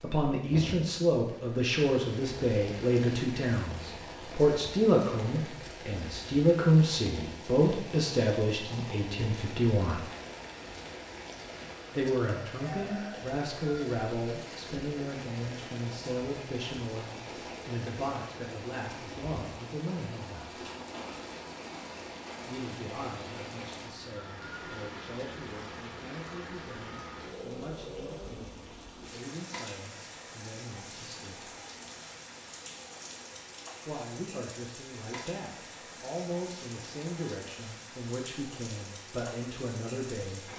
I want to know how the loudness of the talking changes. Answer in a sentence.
The volume of the talking goes down, then up.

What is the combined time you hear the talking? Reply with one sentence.
The talking can be heard for 34 seconds in total.